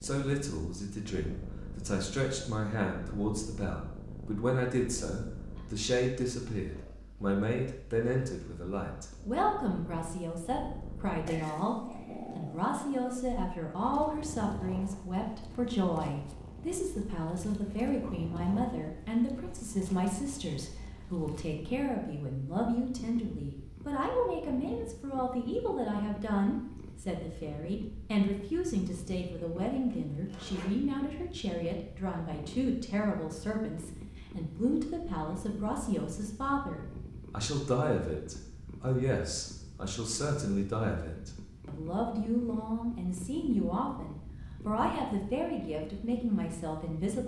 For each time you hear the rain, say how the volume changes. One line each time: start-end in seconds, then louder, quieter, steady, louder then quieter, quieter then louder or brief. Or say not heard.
not heard.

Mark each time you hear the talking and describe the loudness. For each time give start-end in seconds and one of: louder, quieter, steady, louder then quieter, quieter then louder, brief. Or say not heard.
0.0-47.2 steady.